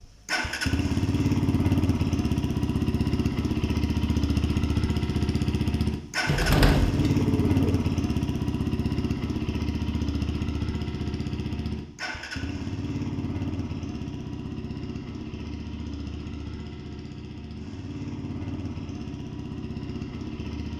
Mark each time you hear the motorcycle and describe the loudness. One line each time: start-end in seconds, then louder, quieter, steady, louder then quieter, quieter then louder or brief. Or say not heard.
0.0-20.7 quieter.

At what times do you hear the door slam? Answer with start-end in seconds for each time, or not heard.
not heard.